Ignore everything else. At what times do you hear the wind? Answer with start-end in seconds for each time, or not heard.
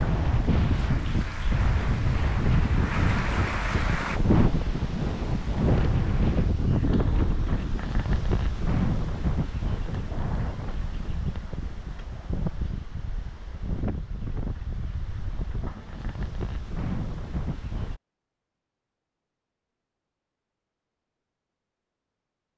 0.0-18.0.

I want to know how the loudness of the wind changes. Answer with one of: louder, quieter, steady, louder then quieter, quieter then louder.
quieter.